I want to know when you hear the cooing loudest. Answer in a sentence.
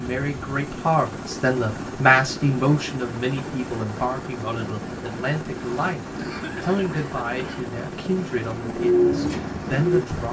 The volume of the cooing peaks at 9 seconds.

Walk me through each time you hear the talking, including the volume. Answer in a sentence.
You can hear the talking from 0.0 to 10.2 s, getting quieter.